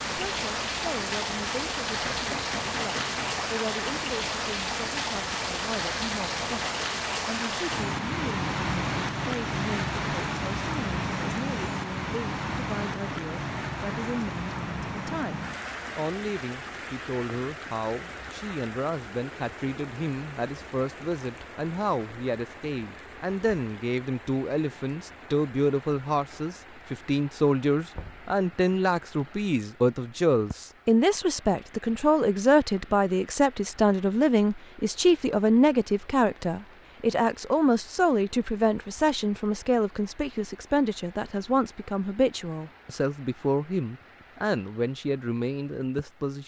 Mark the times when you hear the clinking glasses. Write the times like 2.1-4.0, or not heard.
not heard.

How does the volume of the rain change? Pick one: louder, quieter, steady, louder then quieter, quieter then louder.
quieter.